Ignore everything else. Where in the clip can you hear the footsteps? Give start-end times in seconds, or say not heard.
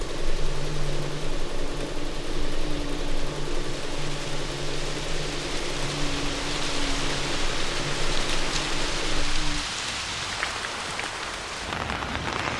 not heard.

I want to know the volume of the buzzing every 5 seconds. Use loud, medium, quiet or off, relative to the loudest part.
loud, loud, off.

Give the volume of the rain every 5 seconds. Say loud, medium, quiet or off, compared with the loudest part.
medium, loud, loud.